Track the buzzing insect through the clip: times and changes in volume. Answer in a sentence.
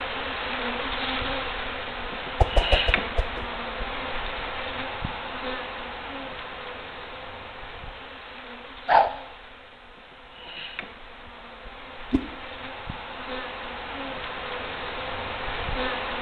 You can hear the buzzing insect from 0.0 to 16.1 s, getting quieter then louder.